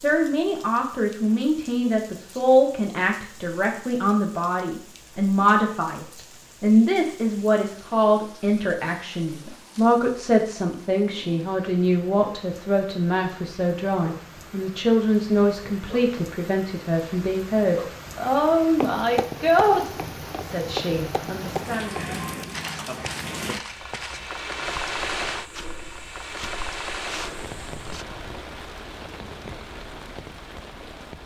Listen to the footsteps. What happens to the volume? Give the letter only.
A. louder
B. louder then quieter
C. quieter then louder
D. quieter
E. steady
D.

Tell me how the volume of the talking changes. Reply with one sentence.
The volume of the talking stays about the same.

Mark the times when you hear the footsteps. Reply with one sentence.
You can hear the footsteps from 18.8 to 28.1 s.